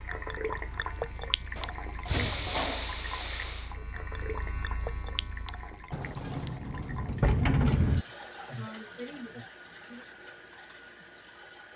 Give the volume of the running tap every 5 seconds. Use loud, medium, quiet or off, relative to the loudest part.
loud, medium, medium.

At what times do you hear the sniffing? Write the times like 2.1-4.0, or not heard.
1.6-3.8, 7.5-10.1.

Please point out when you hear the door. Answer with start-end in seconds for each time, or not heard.
2.0-2.5, 5.9-8.1.